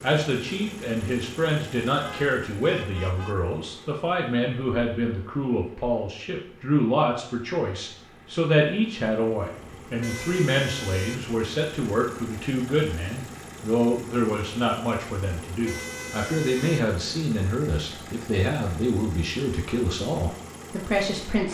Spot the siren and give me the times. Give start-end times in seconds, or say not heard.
not heard.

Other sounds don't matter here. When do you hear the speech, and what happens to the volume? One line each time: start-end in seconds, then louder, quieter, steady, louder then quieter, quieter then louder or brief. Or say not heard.
0.0-21.4 steady.